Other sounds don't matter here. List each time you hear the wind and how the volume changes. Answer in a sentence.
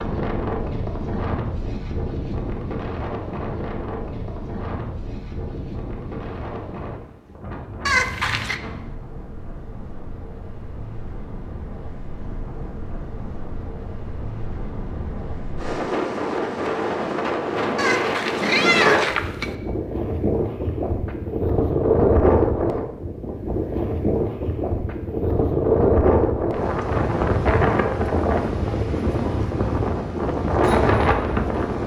The wind can be heard from 0.0 to 31.8 s, getting quieter then louder.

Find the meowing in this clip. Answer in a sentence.
You can hear the meowing from 7.8 to 8.6 s and from 17.8 to 19.5 s.